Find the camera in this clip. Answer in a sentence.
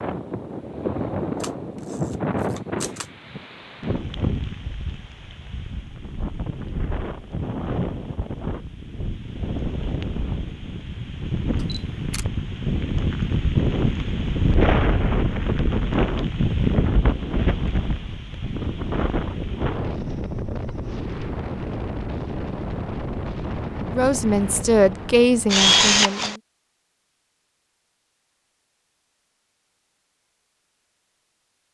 The camera can be heard from 1.4 to 3.0 s, from 11.6 to 12.2 s and from 25.4 to 26.4 s.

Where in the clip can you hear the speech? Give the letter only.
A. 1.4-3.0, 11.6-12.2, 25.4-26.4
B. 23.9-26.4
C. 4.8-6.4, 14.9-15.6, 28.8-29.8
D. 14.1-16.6
B.